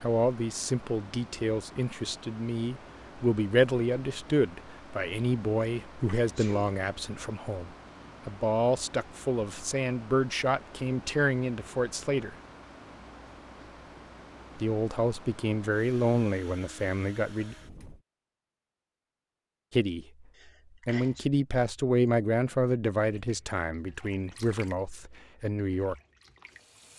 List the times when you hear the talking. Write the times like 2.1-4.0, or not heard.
0.0-12.3, 14.6-17.6, 19.7-20.2, 20.9-25.9.